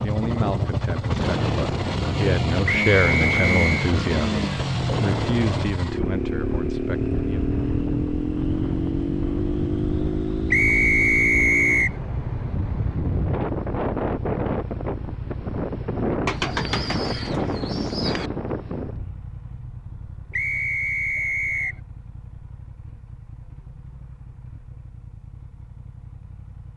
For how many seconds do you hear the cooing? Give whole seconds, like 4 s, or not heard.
2 s.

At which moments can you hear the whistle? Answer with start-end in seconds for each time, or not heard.
2.6-3.7, 10.5-11.9, 20.3-21.8.